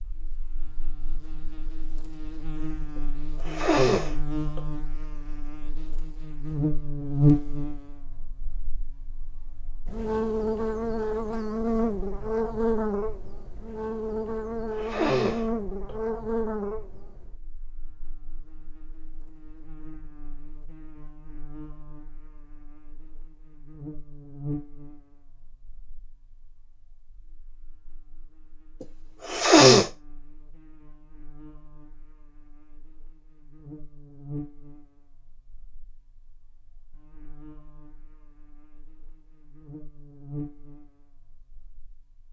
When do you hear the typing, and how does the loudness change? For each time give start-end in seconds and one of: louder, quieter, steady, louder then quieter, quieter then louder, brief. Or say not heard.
not heard.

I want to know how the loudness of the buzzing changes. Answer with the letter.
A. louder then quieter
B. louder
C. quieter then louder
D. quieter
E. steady
C.